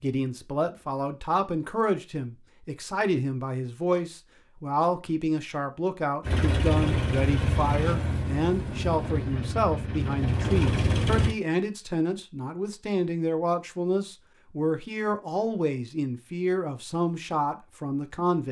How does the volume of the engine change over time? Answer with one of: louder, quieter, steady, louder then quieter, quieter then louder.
quieter then louder.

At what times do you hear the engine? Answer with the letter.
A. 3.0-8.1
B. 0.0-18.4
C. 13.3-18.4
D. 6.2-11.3
D.